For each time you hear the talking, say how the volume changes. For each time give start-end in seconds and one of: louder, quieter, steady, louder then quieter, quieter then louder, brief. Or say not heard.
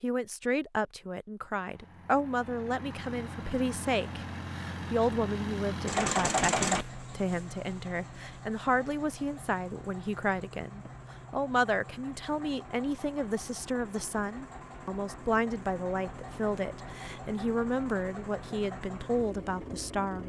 0.0-20.2 steady.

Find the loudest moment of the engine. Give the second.
6 s.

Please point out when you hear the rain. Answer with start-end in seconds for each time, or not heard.
not heard.